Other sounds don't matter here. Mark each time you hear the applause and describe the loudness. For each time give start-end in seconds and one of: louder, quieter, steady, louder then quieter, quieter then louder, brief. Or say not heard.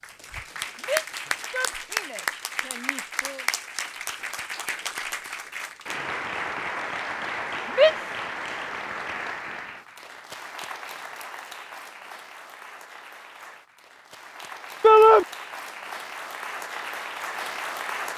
0.0-18.1 quieter then louder.